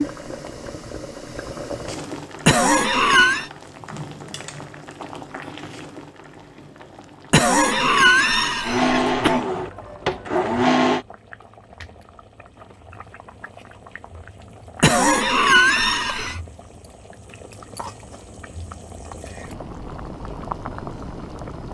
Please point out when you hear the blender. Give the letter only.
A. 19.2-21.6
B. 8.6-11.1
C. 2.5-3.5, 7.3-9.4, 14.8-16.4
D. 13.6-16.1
B.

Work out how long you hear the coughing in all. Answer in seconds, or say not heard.
5 s.